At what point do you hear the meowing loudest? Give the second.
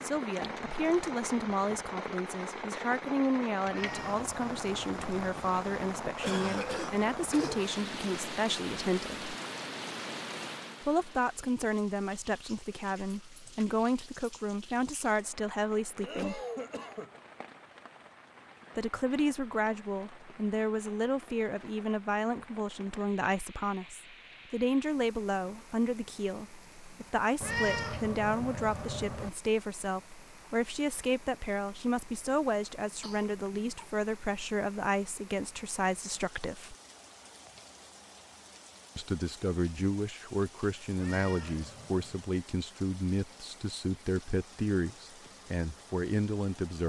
28 s.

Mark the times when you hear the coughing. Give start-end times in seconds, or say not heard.
6.2-7.7, 16.0-17.1, 33.0-33.9.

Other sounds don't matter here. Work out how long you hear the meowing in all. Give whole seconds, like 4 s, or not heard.
5 s.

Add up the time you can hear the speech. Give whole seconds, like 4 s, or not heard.
41 s.